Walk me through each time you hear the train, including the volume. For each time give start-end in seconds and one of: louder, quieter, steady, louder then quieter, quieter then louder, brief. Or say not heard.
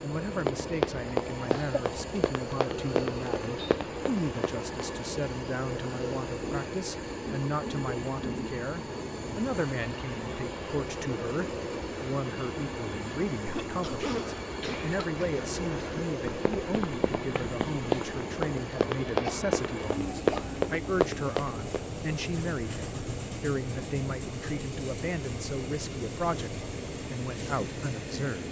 0.0-28.4 steady.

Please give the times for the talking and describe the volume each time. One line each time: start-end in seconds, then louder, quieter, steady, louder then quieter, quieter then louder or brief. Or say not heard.
0.0-28.4 steady.